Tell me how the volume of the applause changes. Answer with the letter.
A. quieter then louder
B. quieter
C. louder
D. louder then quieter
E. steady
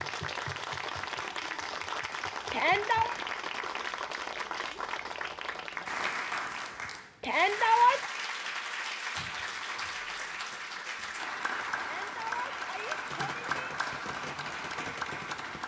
E.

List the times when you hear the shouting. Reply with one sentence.
The shouting can be heard from 2.5 to 3.1 s, from 7.2 to 8.1 s and from 11.8 to 13.8 s.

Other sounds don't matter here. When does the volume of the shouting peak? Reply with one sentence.
The volume of the shouting peaks at 8 seconds.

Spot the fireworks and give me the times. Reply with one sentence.
The fireworks can be heard from 13.1 to 15.6 s.